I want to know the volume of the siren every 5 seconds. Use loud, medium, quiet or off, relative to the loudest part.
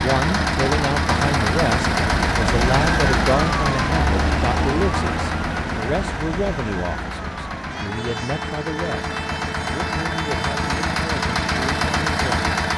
loud, medium, medium.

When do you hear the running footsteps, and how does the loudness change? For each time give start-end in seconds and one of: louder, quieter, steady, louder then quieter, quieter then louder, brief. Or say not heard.
not heard.